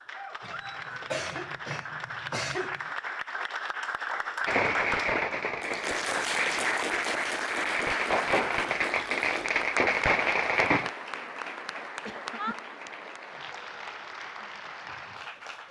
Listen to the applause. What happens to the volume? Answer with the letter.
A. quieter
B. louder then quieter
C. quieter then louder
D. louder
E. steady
B.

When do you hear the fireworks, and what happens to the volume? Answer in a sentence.
You can hear the fireworks from 4.5 to 10.9 s, getting quieter then louder.